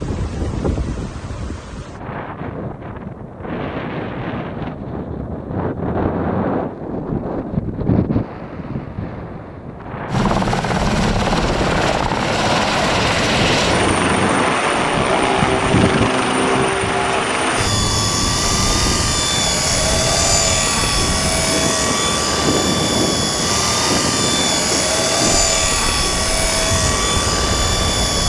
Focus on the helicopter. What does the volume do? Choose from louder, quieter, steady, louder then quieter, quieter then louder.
steady.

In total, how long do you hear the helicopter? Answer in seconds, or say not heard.
18 s.